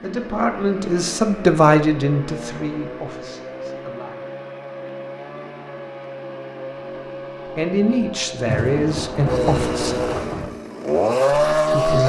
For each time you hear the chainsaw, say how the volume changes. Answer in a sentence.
The chainsaw can be heard from 0.0 to 12.0 s, getting louder.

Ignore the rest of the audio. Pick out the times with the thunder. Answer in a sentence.
The thunder can be heard from 8.4 to 10.5 s.